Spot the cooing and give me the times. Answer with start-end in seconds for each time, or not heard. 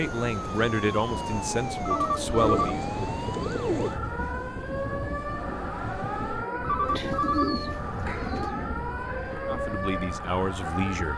2.4-4.0, 6.8-8.7.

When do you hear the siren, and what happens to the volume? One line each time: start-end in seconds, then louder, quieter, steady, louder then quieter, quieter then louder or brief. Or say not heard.
0.0-11.1 steady.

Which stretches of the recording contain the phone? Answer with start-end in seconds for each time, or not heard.
1.8-2.8, 6.6-7.5.